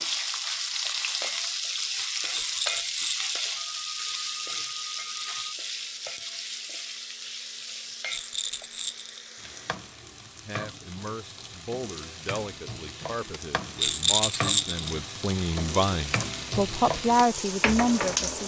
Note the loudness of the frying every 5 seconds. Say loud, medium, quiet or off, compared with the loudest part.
loud, medium, medium, loud.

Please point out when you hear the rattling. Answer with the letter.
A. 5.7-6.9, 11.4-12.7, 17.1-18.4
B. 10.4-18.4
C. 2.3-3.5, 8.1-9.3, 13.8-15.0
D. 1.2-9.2
C.